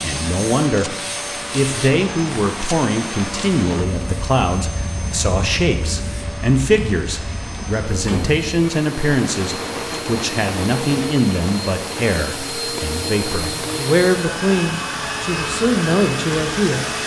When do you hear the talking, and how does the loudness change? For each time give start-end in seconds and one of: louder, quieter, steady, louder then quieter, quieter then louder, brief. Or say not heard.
0.0-16.9 steady.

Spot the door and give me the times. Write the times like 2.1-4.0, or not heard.
7.5-8.4.